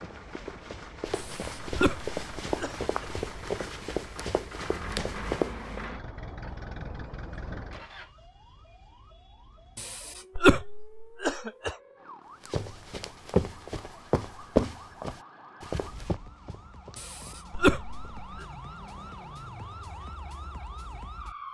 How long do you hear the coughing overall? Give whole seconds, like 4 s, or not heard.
5 s.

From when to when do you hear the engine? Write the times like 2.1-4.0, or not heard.
0.0-8.1.